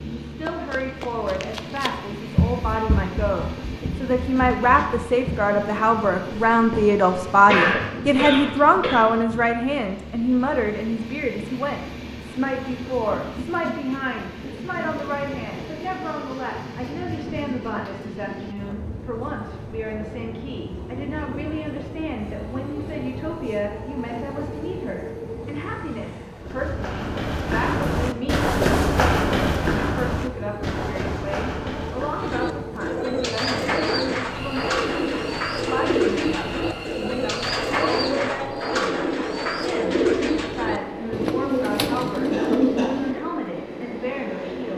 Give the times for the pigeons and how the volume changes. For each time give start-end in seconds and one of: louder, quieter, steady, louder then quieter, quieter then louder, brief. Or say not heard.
32.1-43.1 steady.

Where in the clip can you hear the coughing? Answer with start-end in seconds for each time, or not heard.
6.7-9.0, 42.3-42.9.